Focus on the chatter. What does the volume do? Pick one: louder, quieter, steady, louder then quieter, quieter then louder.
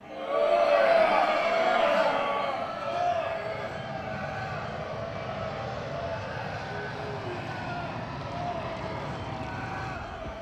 quieter.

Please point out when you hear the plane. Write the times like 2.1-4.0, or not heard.
0.0-10.3.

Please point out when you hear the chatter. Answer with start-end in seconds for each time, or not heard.
0.0-10.3.